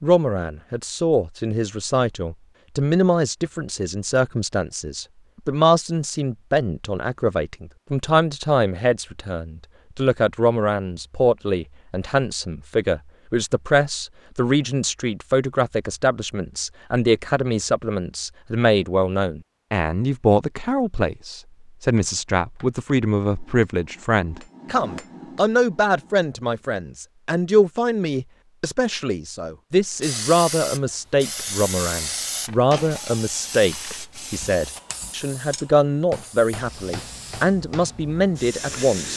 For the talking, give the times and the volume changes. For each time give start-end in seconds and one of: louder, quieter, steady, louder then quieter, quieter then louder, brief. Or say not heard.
0.0-39.1 steady.